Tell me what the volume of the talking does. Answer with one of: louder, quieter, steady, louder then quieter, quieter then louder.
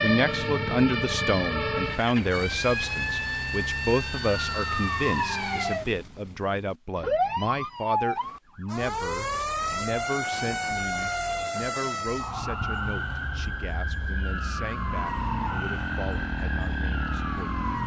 quieter.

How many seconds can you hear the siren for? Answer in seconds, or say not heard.
18 s.